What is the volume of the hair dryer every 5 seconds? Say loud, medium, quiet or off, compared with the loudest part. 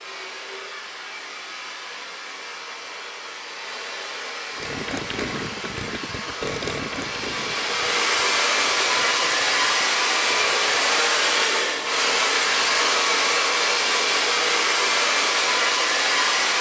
quiet, loud, loud, loud.